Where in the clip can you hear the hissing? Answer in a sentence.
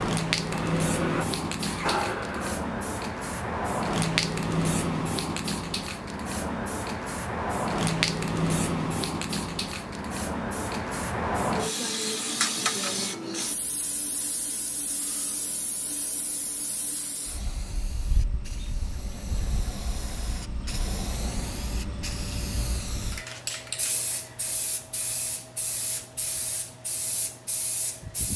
You can hear the hissing from 0.0 to 28.3 s.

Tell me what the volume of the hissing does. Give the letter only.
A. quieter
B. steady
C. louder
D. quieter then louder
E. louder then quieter
A.